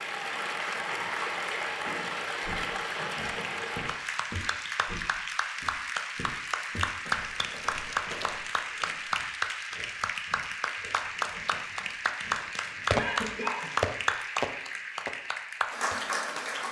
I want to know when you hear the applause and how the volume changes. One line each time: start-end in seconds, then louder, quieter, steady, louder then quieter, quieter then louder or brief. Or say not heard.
0.0-16.6 steady.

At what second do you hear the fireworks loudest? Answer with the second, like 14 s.
13 s.